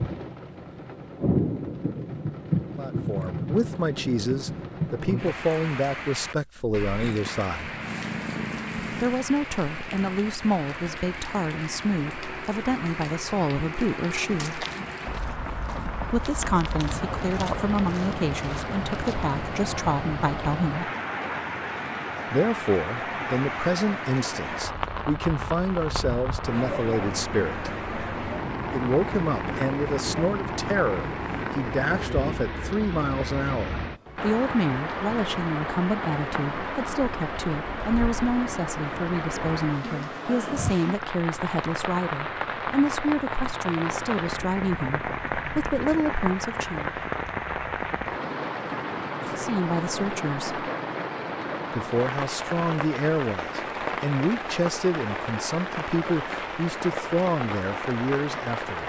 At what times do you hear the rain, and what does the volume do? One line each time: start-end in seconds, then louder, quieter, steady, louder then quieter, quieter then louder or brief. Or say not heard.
0.0-58.8 steady.